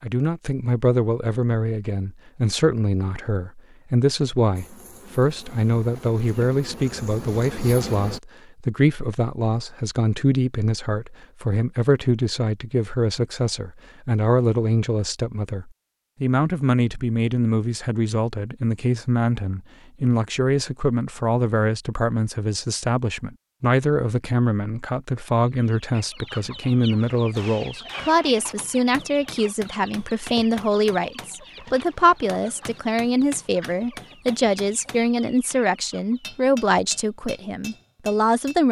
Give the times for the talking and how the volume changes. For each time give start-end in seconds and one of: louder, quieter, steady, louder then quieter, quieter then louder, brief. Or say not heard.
0.0-38.6 steady.